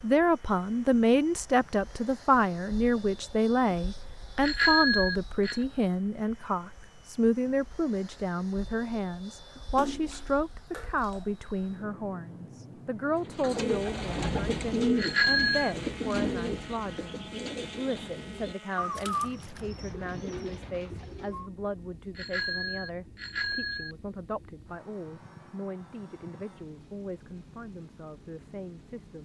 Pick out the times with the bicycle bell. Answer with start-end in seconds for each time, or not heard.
4.4-5.6, 14.9-15.8, 22.1-23.9.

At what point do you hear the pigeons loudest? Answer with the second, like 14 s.
15 s.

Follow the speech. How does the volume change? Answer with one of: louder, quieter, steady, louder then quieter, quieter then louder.
quieter.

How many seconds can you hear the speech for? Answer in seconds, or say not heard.
29 s.